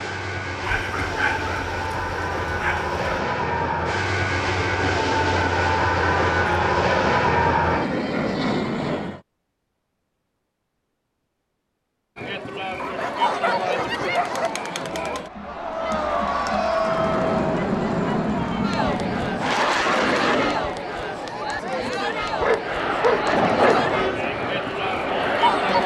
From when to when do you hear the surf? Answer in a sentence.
The surf can't be heard in this clip.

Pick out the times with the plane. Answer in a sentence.
The plane can be heard from 0.0 to 9.2 s, from 16.8 to 20.7 s and from 22.6 to 25.8 s.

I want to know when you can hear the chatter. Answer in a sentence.
The chatter can be heard from 12.2 to 25.8 s.